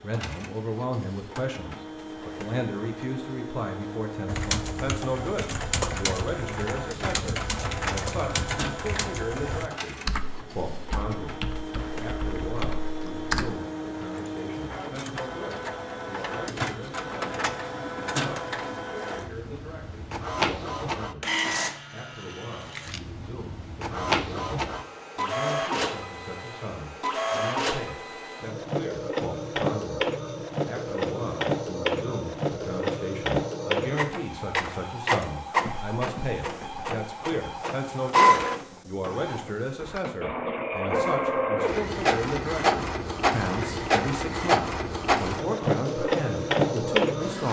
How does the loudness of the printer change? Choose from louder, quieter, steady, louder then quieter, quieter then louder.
louder.